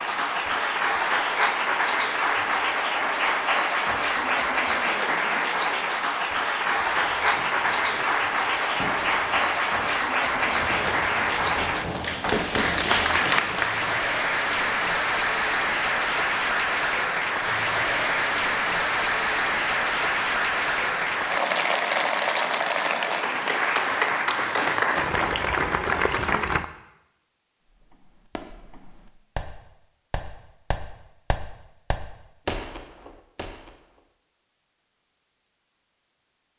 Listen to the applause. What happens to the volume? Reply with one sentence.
The volume of the applause stays about the same.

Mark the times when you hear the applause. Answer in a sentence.
You can hear the applause from 0.0 to 26.6 s.